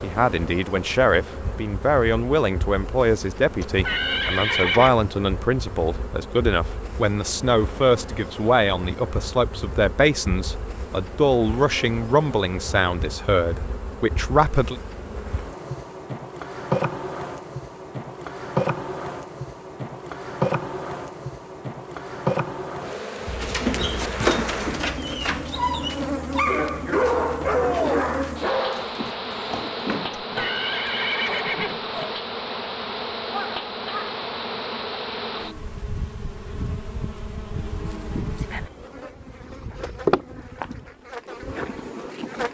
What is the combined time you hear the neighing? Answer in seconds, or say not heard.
3 s.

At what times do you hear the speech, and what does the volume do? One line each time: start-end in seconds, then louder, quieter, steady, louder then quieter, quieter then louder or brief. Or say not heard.
0.0-14.8 steady.